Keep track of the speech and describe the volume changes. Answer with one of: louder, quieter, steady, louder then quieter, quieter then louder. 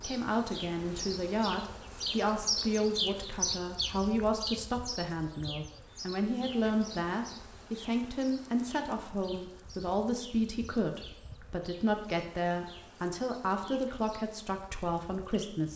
steady.